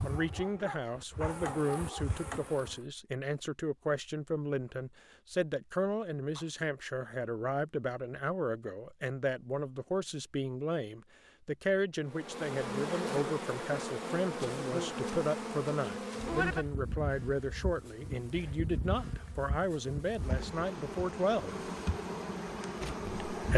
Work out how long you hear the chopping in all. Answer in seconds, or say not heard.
not heard.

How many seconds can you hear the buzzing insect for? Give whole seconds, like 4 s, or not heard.
14 s.